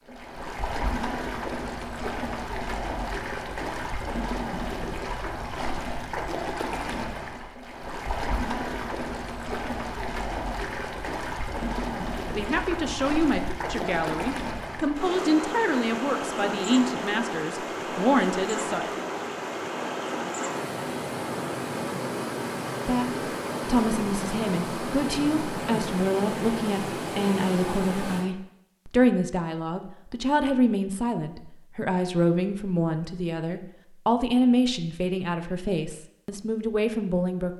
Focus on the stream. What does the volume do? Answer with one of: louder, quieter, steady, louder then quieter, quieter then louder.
steady.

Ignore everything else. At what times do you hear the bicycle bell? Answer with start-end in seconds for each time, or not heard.
not heard.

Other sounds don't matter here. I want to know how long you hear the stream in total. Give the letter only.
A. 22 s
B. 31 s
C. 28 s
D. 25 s
C.